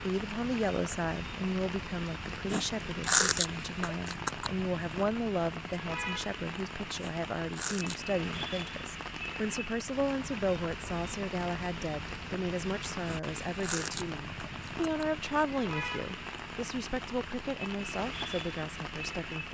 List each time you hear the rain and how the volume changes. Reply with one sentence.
You can hear the rain from 0.0 to 19.4 s, at a steady volume.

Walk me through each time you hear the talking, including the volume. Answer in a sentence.
The talking can be heard from 0.0 to 19.4 s, at a steady volume.